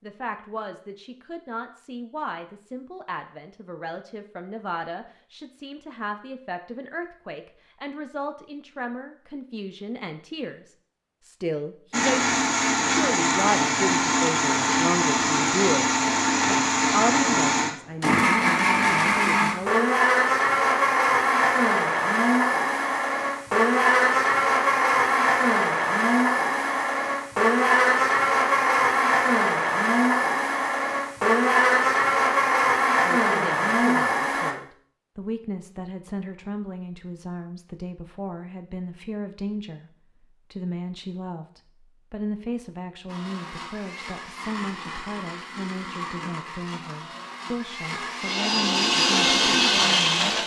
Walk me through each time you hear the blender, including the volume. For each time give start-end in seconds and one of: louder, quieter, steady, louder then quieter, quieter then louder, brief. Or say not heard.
11.9-34.5 steady
43.0-50.4 louder.